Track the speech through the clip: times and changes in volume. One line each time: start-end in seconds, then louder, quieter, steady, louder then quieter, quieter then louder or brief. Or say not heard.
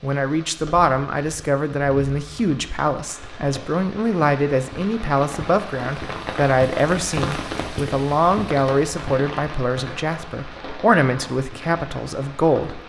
0.0-12.8 steady.